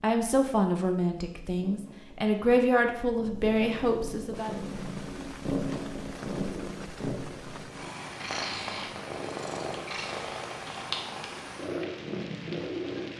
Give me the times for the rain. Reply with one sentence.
The rain can be heard from 4.3 to 13.1 s.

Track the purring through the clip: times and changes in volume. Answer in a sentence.
The purring can be heard from 0.1 to 13.1 s, getting louder.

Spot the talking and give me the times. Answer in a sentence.
The talking can be heard from 0.0 to 4.5 s.